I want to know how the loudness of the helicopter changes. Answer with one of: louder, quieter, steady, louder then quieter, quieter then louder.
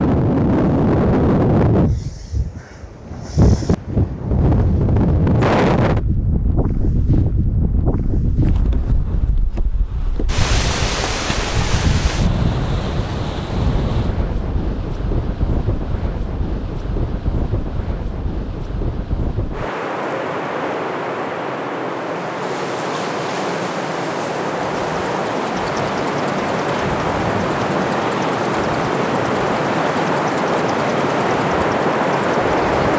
steady.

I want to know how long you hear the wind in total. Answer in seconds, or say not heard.
33 s.